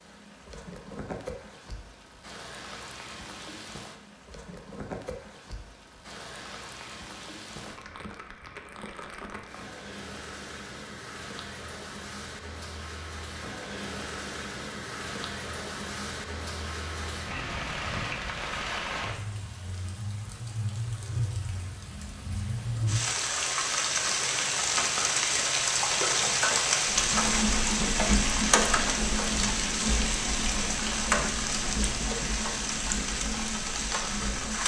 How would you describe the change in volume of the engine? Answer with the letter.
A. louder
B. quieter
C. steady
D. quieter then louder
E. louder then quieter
B.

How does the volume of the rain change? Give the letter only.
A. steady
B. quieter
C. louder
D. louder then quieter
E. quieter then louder
C.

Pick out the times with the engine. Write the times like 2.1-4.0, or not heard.
26.9-34.6.